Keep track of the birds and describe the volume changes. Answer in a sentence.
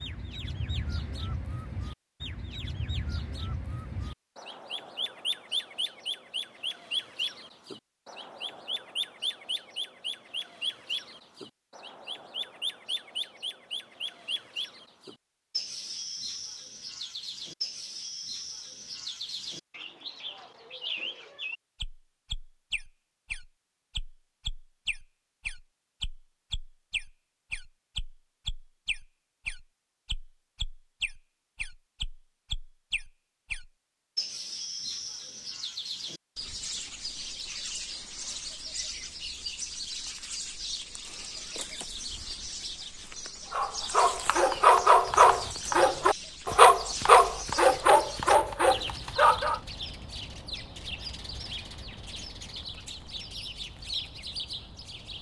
The loudness of the birds stays about the same.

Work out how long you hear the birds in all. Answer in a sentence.
You can hear the birds for 55 seconds altogether.